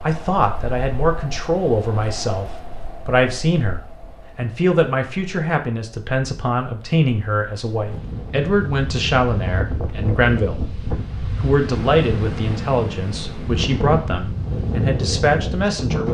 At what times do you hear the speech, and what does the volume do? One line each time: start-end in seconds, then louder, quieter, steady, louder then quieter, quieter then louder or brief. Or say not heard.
0.0-16.1 steady.